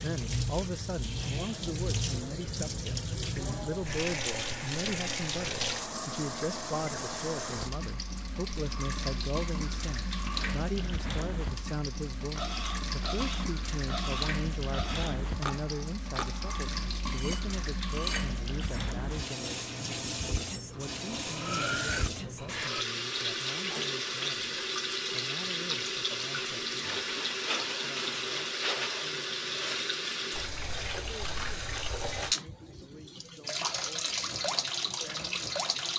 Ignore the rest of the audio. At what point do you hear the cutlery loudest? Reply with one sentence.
The loudest moment of the cutlery is at 22 seconds.